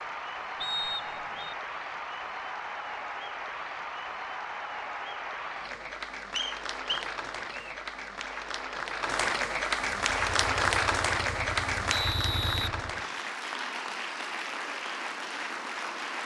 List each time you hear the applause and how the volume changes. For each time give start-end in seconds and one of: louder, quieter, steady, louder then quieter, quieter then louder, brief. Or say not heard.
0.0-16.2 louder then quieter.